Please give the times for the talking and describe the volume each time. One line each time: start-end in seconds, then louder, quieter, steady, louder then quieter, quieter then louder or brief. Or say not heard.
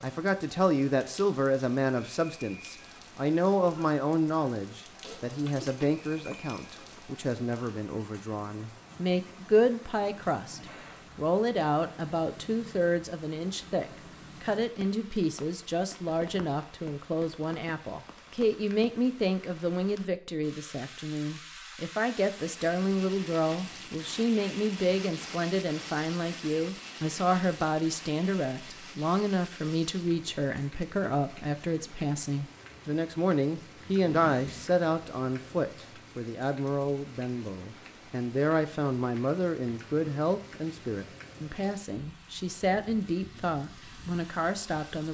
0.0-45.0 steady.